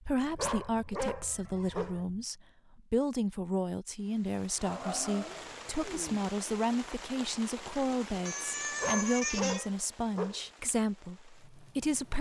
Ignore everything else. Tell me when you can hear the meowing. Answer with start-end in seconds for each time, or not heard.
0.2-2.2, 4.7-6.2, 8.2-9.7.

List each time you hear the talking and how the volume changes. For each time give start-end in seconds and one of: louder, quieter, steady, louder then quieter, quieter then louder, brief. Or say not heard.
0.0-12.1 steady.